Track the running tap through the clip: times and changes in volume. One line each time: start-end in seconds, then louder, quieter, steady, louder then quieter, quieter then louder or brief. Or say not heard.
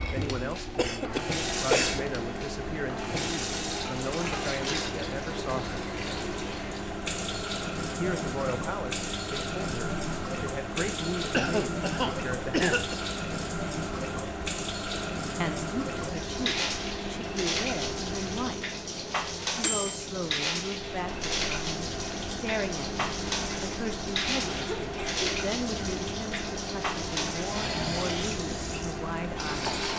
0.0-29.9 steady.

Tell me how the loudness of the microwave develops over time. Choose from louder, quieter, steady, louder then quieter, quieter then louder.
steady.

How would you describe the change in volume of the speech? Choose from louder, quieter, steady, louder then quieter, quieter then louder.
steady.